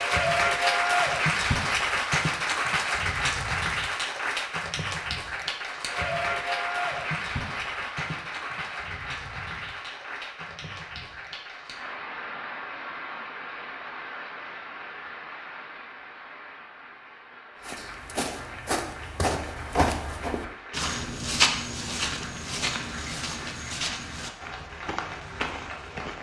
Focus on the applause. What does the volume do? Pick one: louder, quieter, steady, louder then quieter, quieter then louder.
quieter.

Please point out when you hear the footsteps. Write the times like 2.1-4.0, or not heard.
17.6-26.1.